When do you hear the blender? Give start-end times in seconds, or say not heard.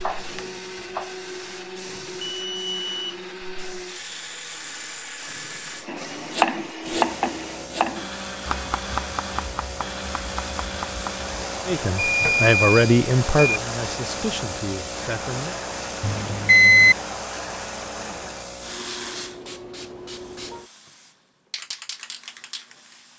0.0-23.1.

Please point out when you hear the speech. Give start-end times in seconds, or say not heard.
11.7-15.6.